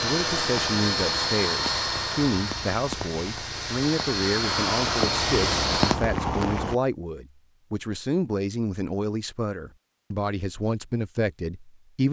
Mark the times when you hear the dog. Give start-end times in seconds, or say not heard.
not heard.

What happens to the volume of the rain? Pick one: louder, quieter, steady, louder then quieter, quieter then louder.
louder.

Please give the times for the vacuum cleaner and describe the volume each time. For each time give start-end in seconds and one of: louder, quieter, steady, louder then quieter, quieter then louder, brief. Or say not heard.
0.0-6.0 quieter then louder.